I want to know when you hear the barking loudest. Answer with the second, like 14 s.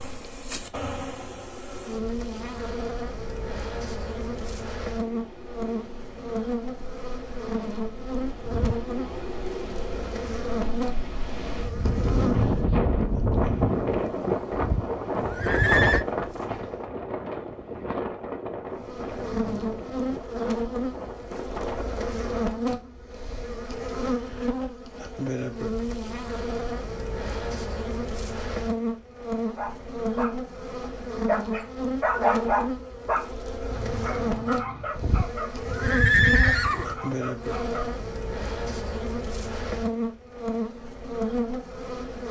32 s.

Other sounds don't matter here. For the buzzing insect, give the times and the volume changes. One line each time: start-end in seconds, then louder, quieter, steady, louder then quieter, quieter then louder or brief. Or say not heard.
0.0-16.9 quieter
18.8-42.2 steady.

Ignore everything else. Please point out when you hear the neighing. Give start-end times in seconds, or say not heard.
8.4-9.2, 14.5-16.1, 35.0-37.0.